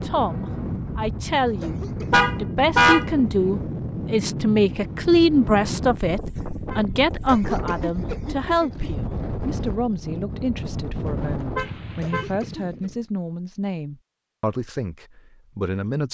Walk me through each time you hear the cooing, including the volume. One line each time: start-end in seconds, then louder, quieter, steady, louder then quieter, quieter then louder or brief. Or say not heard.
not heard.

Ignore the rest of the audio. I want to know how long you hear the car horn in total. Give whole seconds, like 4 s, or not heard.
3 s.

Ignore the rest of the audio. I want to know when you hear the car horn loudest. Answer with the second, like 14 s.
3 s.